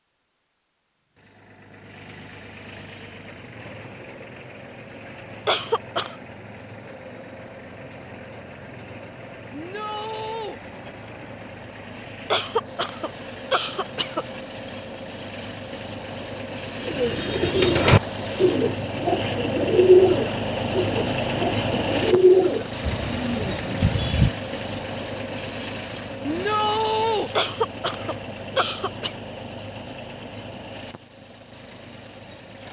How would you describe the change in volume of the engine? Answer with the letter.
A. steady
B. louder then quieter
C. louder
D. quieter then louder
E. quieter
B.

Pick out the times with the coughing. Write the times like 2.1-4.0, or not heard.
5.5-6.2, 12.3-14.2, 27.4-29.1.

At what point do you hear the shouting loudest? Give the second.
27 s.